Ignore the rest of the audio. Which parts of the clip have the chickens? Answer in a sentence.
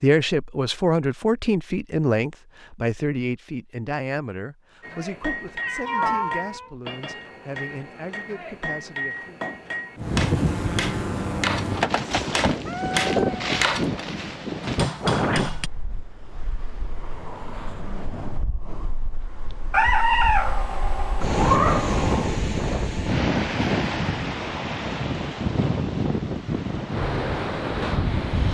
The chickens can't be heard in this clip.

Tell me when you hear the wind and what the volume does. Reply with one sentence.
The wind can be heard from 9.9 to 28.4 s, getting quieter then louder.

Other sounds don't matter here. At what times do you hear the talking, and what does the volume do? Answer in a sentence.
You can hear the talking from 0.0 to 9.4 s, getting quieter.